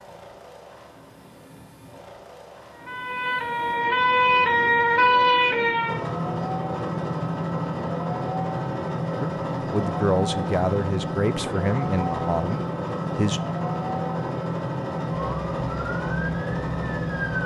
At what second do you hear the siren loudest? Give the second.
5 s.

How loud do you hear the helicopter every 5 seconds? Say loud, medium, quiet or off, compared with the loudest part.
quiet, loud, loud, loud.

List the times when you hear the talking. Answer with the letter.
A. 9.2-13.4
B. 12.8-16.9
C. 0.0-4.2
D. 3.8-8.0
A.